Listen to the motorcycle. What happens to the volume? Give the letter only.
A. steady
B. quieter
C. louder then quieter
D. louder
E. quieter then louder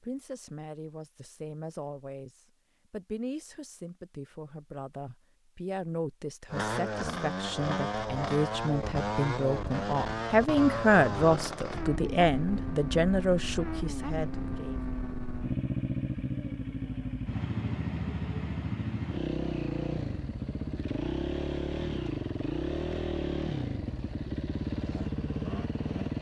A.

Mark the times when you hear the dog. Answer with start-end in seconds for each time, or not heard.
not heard.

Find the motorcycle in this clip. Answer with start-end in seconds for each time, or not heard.
6.5-26.1.